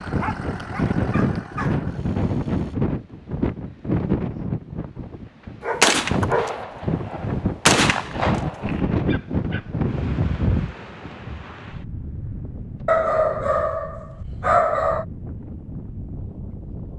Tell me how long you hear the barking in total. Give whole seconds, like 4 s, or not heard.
6 s.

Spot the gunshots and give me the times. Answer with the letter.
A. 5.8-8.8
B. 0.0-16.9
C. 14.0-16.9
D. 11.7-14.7
A.